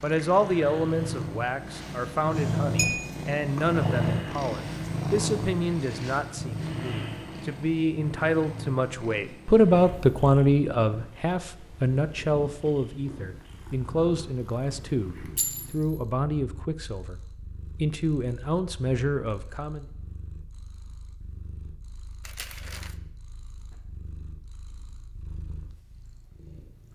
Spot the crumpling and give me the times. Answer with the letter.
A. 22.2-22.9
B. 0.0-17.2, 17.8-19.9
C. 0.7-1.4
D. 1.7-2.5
A.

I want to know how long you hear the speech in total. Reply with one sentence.
You can hear the speech for 19 seconds altogether.